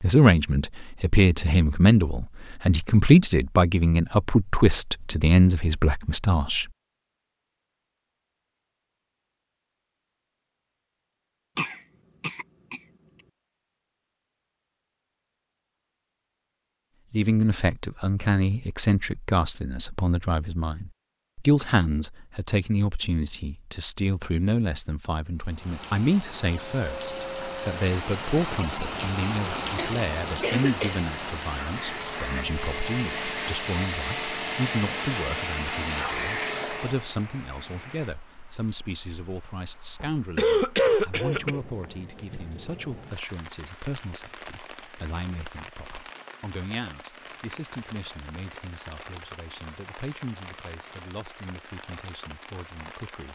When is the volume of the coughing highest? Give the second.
41 s.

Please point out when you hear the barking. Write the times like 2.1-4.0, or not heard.
not heard.